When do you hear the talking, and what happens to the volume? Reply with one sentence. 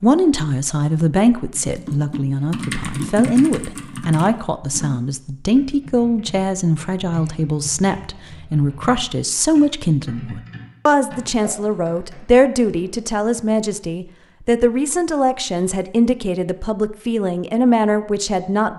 You can hear the talking from 0.0 to 18.7 s, at a steady volume.